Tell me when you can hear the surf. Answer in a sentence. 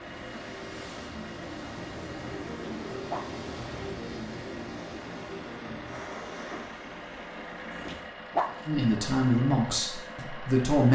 The surf can be heard from 0.0 to 8.1 s.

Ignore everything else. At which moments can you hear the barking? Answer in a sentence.
The barking can be heard from 2.6 to 3.4 s and from 7.8 to 8.8 s.